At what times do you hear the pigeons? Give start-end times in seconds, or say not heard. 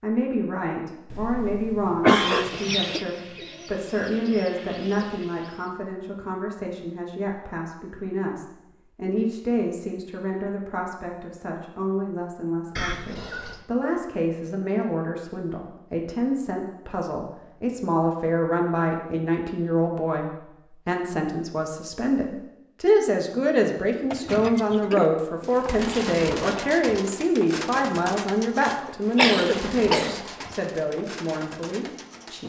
2.2-5.7, 23.9-32.4.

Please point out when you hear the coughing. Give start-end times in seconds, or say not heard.
1.1-2.5, 12.8-13.7, 28.6-30.1.